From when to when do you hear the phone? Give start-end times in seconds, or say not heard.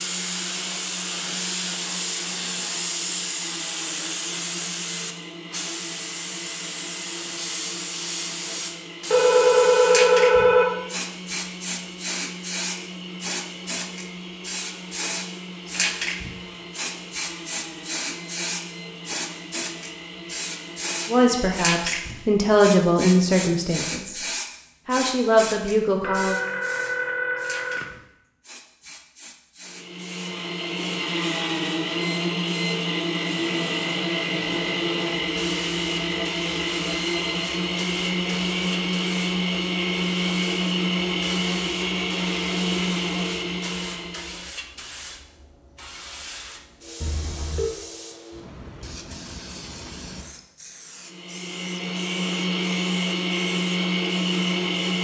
9.1-10.7, 26.0-27.9, 47.0-47.7.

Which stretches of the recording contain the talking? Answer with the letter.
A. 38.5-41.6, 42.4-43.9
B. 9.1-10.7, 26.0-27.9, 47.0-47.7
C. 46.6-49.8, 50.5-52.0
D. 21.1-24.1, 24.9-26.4
D.